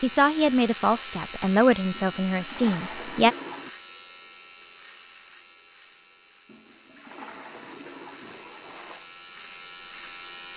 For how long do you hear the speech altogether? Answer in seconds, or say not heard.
3 s.